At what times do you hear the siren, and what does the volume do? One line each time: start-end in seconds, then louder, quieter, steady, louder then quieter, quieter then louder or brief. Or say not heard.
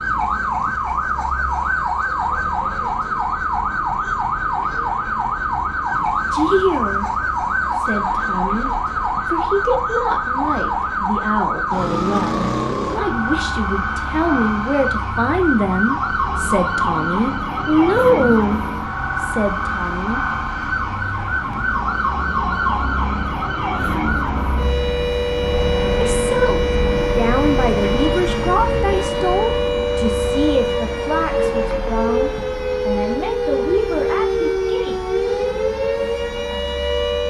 0.0-37.2 steady.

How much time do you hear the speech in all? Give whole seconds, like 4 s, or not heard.
23 s.